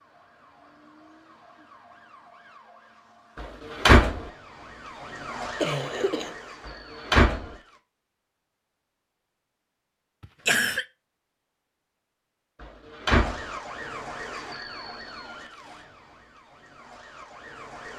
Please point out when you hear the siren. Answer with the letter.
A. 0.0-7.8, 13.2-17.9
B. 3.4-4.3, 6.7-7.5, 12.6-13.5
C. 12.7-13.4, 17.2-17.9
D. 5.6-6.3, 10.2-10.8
A.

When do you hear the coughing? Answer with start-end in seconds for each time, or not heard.
5.6-6.3, 10.2-10.8.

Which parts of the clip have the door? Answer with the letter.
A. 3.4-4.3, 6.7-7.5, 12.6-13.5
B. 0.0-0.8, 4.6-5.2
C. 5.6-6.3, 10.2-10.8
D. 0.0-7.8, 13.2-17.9
A.